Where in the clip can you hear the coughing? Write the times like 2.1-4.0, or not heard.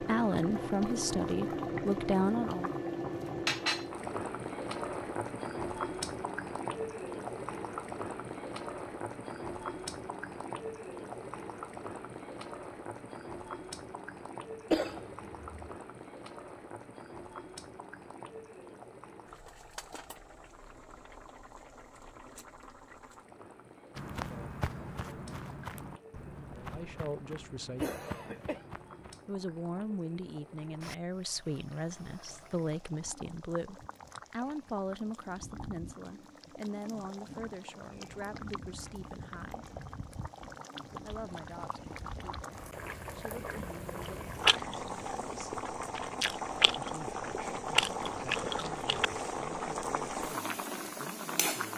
14.7-15.7, 27.8-28.6.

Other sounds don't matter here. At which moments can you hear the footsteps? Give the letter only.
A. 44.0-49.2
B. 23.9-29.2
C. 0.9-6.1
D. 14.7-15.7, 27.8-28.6
B.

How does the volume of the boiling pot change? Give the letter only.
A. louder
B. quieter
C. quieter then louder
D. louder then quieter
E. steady
C.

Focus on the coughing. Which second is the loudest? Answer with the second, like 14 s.
15 s.